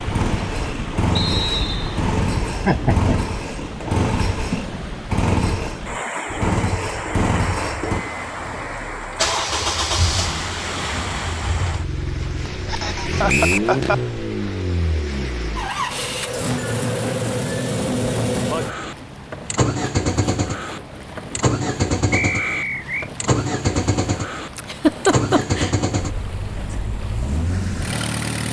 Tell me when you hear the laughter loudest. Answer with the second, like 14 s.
25 s.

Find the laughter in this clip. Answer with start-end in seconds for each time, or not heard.
2.6-3.2, 12.7-13.9, 24.6-25.8.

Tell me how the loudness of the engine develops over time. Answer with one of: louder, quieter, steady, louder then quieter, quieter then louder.
steady.